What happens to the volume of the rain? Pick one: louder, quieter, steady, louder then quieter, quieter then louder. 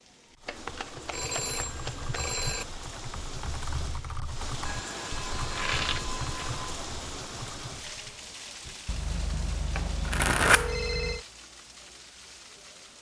louder then quieter.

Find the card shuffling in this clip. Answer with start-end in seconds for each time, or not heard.
0.5-2.2, 5.5-6.5, 9.8-10.8.